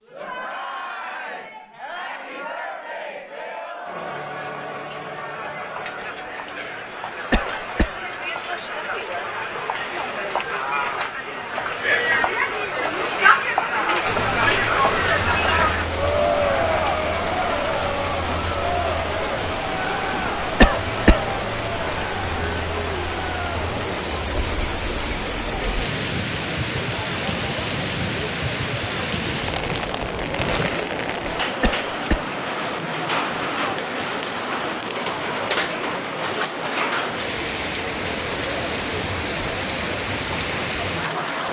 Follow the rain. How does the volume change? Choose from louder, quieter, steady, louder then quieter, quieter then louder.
steady.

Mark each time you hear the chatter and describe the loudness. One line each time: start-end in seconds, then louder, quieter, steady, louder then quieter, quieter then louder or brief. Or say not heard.
0.0-41.4 louder then quieter.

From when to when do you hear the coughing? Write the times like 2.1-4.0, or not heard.
7.3-8.0, 20.6-21.2, 31.6-32.3.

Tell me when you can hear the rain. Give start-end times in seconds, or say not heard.
14.0-41.4.